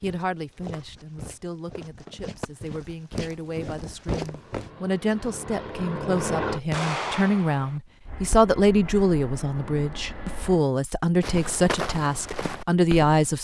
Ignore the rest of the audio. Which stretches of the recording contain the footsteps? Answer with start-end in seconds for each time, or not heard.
0.0-4.7, 11.2-13.3.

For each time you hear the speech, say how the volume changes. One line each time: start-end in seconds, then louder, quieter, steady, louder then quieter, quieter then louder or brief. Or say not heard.
0.0-13.3 louder.